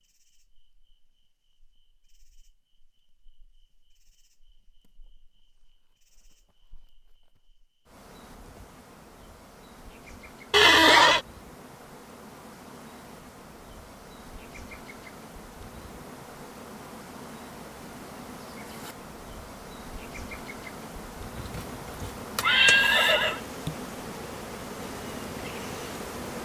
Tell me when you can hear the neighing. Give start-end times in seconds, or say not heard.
10.5-11.2, 21.4-23.4.